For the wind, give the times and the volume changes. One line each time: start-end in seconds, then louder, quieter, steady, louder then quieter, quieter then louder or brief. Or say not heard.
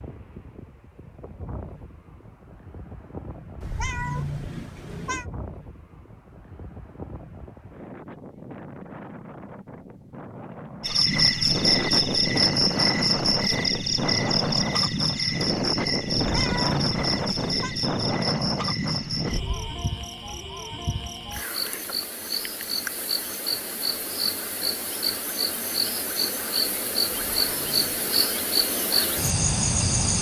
0.0-19.9 louder.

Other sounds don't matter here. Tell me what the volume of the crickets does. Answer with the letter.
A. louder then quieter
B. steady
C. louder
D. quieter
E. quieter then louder
E.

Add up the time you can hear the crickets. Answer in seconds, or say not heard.
19 s.